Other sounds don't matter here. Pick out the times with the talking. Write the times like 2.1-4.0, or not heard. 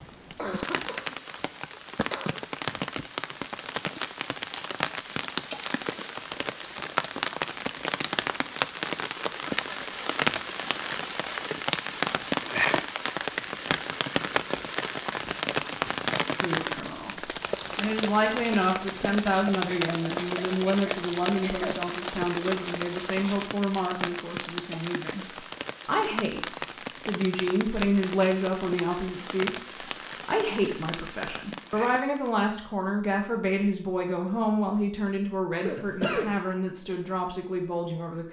16.4-25.2, 25.9-29.6, 30.2-38.2.